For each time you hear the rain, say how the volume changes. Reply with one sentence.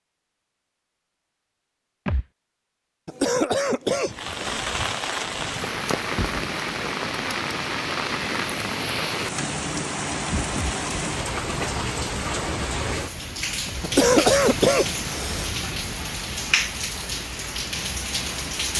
The rain can be heard from 4.1 to 18.7 s, at a steady volume.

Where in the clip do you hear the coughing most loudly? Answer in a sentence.
The loudest moment of the coughing is at 14 seconds.